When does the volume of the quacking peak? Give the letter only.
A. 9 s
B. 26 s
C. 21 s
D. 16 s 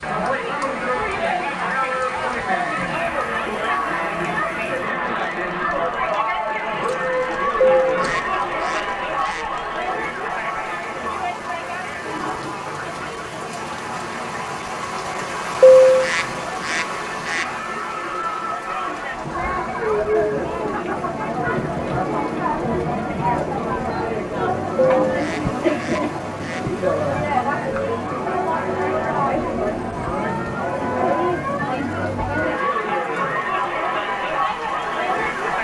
D.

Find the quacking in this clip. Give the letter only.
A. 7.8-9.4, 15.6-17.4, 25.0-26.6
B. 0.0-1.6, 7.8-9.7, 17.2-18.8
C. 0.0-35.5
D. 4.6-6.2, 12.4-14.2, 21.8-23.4
A.